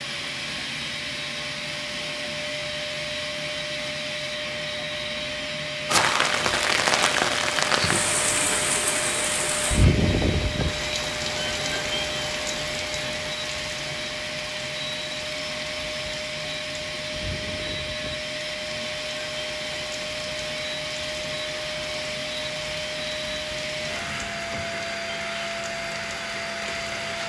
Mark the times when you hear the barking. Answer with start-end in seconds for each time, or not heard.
not heard.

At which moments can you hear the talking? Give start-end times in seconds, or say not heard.
not heard.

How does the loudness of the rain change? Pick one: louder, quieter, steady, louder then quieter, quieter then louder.
quieter.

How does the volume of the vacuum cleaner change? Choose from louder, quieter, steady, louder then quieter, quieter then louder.
steady.